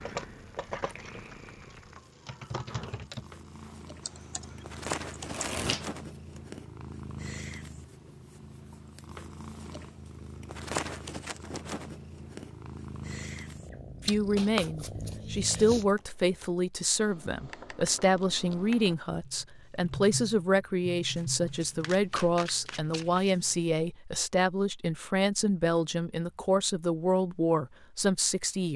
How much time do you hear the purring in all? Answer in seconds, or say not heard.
16 s.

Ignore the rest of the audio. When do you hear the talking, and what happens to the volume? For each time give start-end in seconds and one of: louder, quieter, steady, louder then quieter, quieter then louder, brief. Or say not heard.
14.1-28.7 steady.